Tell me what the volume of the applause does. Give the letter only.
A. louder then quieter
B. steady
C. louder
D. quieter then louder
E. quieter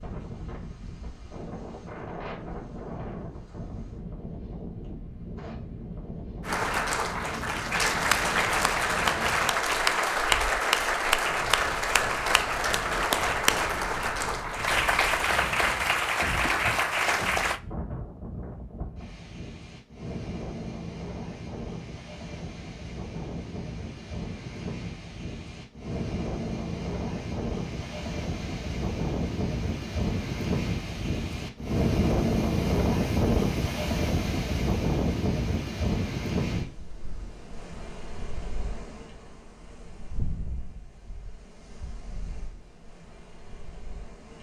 B.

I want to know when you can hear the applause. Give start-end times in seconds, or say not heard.
6.5-17.6.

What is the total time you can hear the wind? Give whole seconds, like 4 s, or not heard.
44 s.